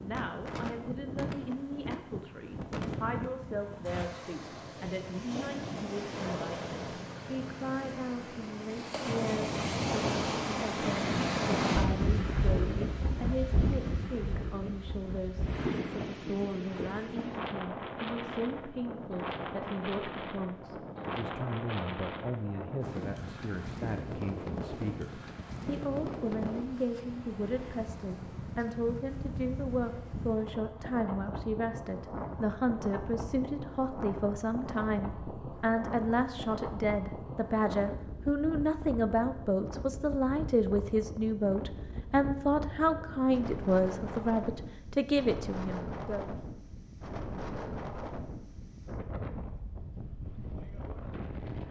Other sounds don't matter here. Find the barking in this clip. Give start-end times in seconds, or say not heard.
not heard.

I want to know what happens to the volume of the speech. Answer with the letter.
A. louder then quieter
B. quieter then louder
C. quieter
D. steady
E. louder
E.